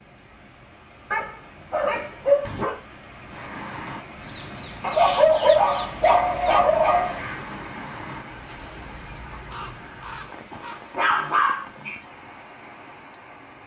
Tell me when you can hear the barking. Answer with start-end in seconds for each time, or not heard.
1.1-2.8, 4.8-7.2, 10.5-11.9.